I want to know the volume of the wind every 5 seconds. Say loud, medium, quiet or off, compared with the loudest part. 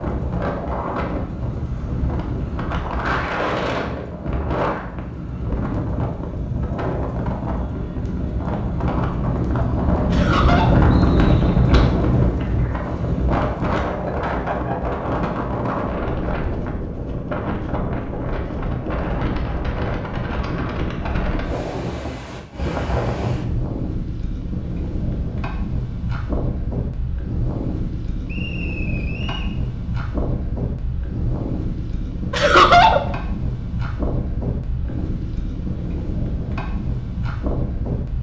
medium, medium, loud, medium, medium, medium, medium, medium.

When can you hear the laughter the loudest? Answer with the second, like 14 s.
33 s.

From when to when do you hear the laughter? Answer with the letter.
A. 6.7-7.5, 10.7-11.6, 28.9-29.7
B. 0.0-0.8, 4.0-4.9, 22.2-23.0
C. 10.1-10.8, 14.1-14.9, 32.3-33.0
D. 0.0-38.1
C.